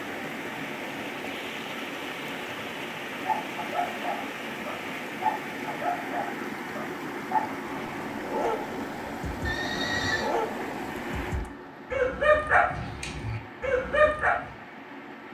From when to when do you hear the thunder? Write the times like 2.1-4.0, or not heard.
not heard.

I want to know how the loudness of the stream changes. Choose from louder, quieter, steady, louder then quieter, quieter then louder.
quieter.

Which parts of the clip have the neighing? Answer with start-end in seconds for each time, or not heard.
9.4-10.3.